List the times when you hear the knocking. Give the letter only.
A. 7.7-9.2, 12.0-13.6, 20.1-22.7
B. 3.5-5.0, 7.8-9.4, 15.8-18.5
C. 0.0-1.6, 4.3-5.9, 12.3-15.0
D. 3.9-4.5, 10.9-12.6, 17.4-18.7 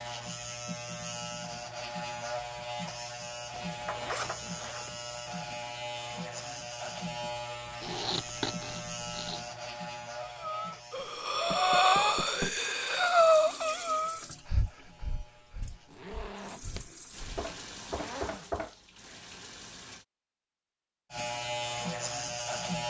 D.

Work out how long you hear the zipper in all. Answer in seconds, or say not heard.
6 s.